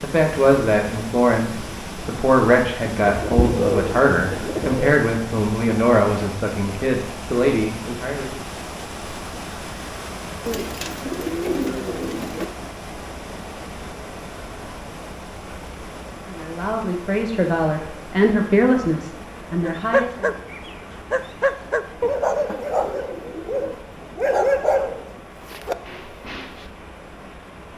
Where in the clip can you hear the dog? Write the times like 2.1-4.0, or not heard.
19.6-26.6.